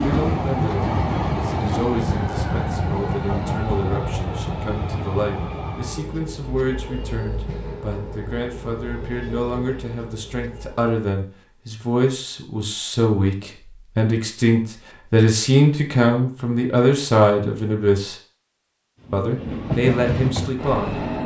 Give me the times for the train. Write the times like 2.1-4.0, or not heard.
0.0-10.8, 19.0-21.2.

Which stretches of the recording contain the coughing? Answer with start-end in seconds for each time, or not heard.
not heard.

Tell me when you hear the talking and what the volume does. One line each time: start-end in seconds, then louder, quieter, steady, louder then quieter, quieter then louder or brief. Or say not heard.
0.0-18.1 louder
19.1-20.9 brief.